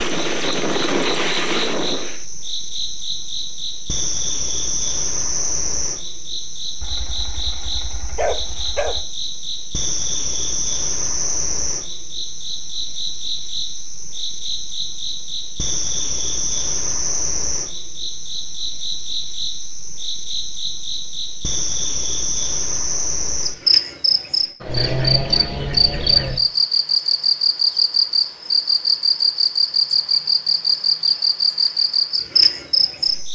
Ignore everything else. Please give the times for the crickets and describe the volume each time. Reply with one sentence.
The crickets can be heard from 0.0 to 33.3 s, getting louder.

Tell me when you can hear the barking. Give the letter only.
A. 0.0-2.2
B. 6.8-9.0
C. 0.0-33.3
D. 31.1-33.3
B.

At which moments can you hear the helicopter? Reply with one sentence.
The helicopter can be heard from 0.0 to 2.2 s.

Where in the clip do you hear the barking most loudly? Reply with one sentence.
The loudest moment of the barking is at 8 seconds.